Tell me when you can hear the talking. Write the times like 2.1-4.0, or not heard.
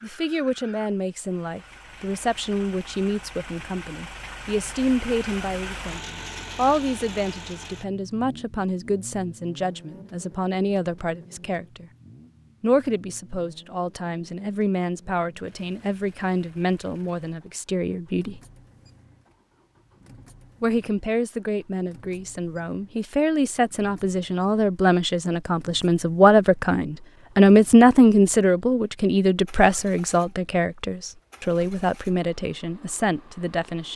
0.0-11.9, 12.6-18.4, 20.6-33.9.